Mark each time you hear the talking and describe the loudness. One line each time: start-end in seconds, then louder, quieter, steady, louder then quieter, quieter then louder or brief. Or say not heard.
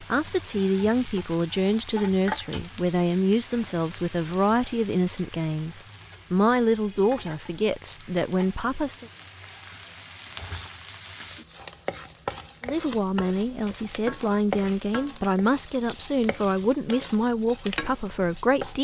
0.0-9.1 steady
12.7-18.7 steady.